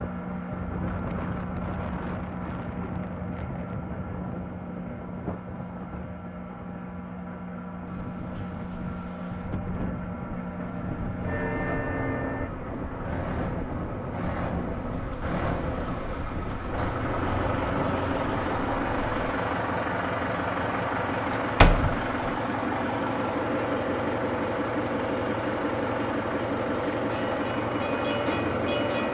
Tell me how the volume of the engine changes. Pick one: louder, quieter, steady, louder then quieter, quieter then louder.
louder.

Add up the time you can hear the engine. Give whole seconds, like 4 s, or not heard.
29 s.